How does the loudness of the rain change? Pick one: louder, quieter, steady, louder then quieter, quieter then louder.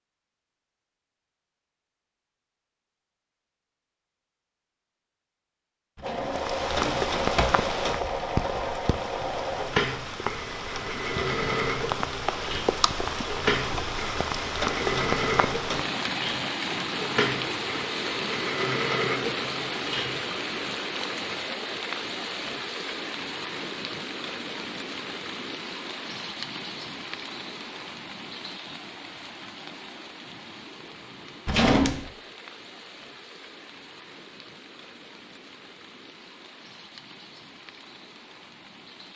quieter.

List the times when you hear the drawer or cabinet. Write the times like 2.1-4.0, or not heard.
6.0-7.7, 31.4-32.1.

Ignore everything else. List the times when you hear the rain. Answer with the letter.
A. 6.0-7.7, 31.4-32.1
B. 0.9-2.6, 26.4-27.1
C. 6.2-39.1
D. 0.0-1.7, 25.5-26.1
C.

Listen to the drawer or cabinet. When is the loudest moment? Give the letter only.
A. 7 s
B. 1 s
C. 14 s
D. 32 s
D.